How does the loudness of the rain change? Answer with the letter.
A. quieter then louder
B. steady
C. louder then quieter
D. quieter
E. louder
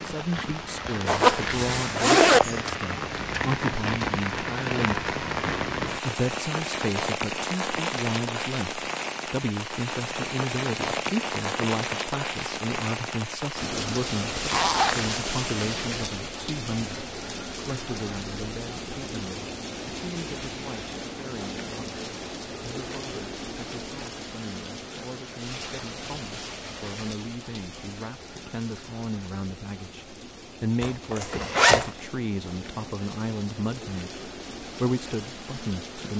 D.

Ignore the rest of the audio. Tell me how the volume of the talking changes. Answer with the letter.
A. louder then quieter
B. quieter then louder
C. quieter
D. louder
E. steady
B.